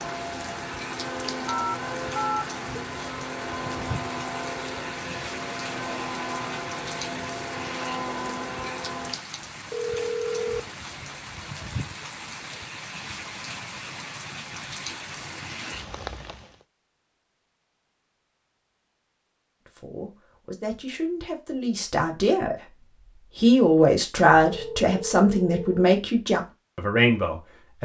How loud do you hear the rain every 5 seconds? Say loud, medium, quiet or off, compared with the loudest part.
loud, loud, loud, loud, off, off.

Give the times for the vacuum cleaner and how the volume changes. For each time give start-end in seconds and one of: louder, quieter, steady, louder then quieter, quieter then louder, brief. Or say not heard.
0.0-9.2 steady.